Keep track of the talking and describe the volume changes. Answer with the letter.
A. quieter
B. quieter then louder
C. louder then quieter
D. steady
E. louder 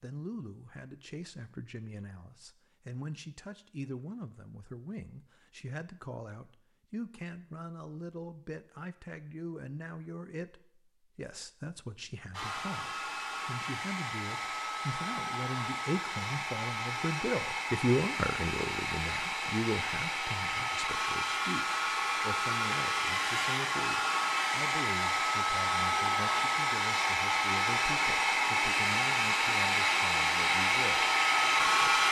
C.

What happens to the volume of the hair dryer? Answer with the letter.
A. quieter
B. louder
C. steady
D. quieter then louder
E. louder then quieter
B.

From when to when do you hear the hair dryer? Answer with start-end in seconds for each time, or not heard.
12.3-32.0.